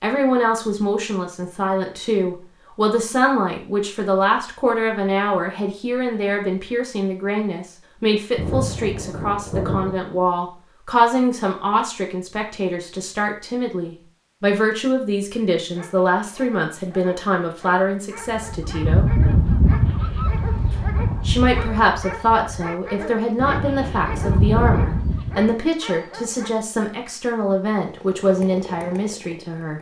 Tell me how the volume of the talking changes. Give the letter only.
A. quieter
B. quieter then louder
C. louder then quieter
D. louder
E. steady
E.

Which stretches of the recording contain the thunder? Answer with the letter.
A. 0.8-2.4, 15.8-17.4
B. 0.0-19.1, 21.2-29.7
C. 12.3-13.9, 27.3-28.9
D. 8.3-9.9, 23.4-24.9
D.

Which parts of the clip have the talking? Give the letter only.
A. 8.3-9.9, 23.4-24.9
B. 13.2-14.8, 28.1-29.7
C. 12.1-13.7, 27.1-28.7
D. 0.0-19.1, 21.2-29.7
D.